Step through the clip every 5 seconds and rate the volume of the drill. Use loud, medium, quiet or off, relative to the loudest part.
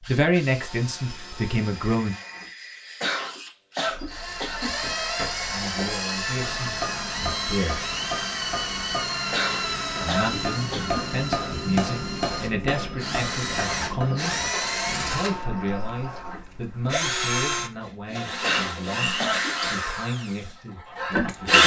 quiet, medium, medium, medium, loud.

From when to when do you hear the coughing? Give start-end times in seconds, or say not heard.
3.0-4.8, 9.3-11.1, 18.4-19.6.